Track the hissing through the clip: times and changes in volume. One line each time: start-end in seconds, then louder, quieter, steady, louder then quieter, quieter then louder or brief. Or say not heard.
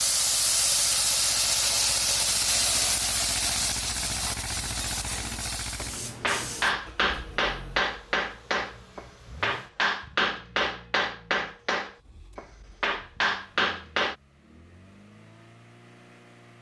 0.0-6.8 quieter.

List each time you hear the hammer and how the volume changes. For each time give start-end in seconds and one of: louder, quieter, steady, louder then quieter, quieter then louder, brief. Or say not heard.
5.8-14.2 steady.